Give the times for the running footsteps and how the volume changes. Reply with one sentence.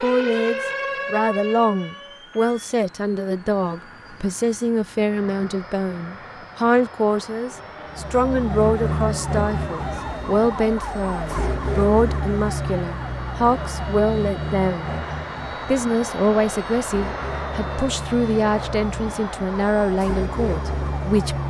You can't hear the running footsteps here.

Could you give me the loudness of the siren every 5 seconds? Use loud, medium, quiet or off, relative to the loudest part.
loud, loud, loud, medium, loud.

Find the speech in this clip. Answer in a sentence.
The speech can be heard from 0.0 to 14.9 s and from 15.7 to 21.4 s.